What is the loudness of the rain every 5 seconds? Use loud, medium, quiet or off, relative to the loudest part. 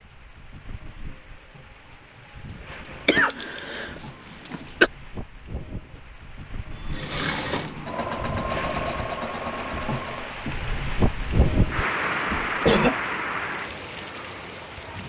quiet, medium, loud.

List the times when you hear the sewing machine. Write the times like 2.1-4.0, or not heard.
6.8-10.5.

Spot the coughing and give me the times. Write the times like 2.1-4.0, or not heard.
3.0-4.9, 12.3-13.0.